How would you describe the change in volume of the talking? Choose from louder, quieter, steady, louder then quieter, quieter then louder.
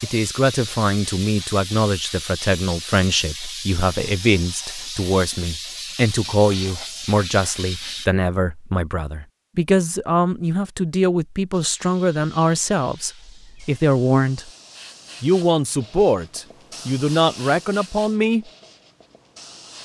steady.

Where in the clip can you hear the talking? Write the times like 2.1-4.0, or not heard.
0.0-14.5, 15.2-18.4.